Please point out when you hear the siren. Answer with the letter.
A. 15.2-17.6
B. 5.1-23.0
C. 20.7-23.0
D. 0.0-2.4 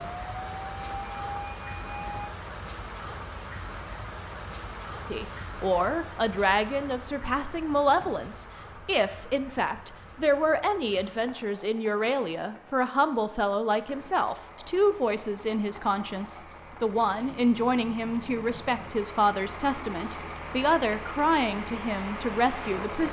D.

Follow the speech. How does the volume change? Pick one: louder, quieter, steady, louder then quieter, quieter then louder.
steady.